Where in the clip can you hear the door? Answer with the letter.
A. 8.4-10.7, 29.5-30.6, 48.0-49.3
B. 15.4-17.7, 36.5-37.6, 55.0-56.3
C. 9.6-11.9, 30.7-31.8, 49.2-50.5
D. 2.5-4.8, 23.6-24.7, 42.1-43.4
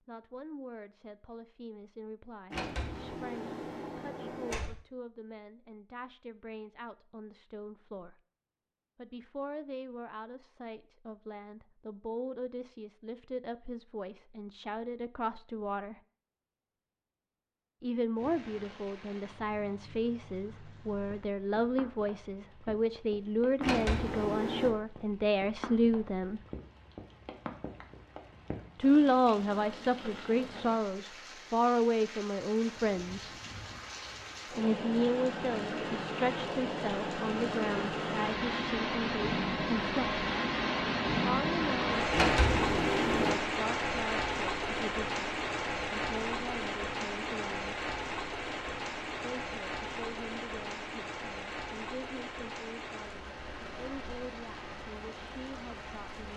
D.